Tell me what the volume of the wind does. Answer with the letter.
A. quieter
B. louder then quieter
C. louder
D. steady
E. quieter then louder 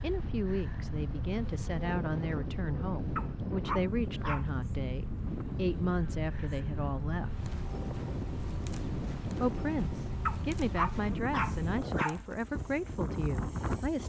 D.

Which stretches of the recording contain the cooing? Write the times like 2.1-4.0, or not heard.
not heard.